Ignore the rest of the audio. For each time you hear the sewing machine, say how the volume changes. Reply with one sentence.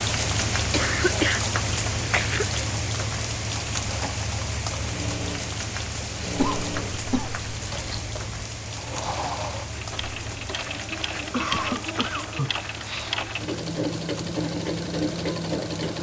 The sewing machine can be heard from 4.7 to 15.9 s, getting louder.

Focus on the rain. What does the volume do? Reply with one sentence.
The volume of the rain goes down.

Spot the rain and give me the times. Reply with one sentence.
The rain can be heard from 0.0 to 15.9 s.